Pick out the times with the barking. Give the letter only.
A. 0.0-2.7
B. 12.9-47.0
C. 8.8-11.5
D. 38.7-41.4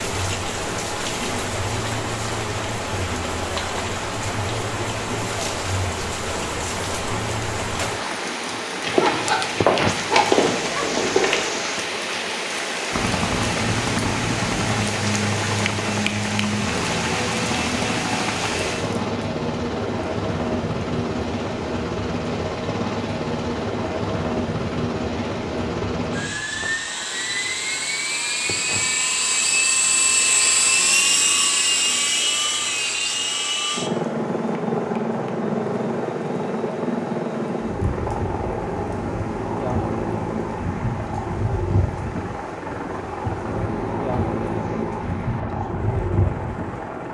C.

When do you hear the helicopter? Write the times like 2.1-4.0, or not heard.
12.9-47.0.